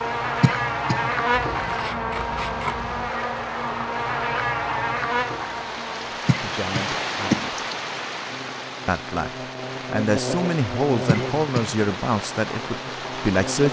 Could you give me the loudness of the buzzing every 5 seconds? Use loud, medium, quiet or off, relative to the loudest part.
loud, medium, medium.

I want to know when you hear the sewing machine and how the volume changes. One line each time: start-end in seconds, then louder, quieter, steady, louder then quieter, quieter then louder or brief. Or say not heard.
not heard.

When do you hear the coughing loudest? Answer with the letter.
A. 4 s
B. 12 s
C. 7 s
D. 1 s
C.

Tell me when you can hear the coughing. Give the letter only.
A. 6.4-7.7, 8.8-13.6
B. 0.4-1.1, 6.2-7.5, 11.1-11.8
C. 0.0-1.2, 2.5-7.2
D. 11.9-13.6
B.